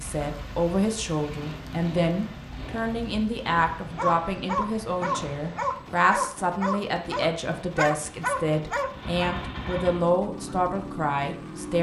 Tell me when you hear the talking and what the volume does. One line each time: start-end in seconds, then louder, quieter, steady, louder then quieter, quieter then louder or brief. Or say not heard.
0.0-11.7 steady.